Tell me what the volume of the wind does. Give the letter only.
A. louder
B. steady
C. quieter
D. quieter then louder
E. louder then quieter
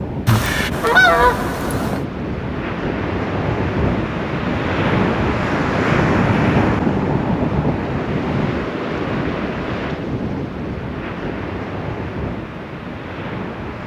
E.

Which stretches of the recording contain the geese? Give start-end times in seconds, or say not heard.
0.2-2.0.